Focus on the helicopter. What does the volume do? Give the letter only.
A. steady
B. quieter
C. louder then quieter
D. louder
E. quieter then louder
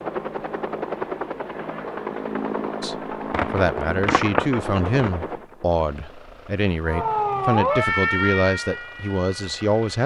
B.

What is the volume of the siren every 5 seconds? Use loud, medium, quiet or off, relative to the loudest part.
off, loud.